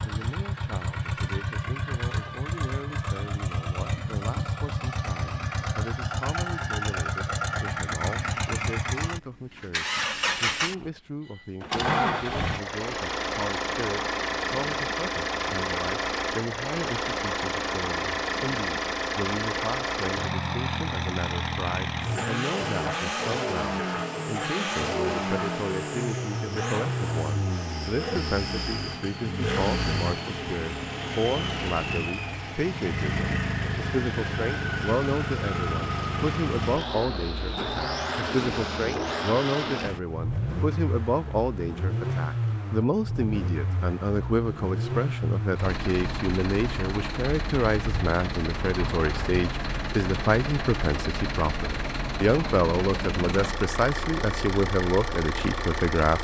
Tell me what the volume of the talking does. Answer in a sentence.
The volume of the talking goes up.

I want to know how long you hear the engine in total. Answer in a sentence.
The engine can be heard for 56 seconds in total.